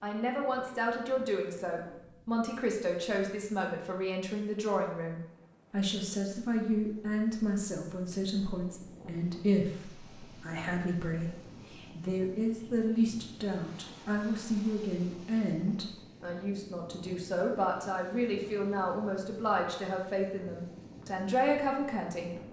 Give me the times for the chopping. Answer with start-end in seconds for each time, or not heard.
not heard.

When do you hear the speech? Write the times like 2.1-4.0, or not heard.
0.0-22.4.